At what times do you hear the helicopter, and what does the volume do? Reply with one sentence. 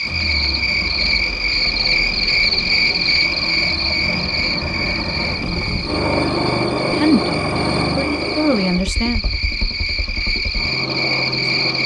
You can hear the helicopter from 0.0 to 11.8 s, getting louder then quieter.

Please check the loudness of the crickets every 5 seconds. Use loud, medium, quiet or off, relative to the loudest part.
loud, medium, loud.